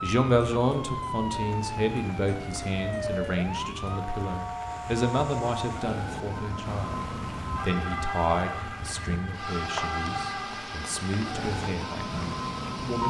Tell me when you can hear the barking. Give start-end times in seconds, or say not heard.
not heard.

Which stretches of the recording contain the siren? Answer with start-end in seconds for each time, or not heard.
0.0-13.0.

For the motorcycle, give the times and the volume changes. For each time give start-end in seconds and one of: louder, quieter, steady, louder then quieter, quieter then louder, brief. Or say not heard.
not heard.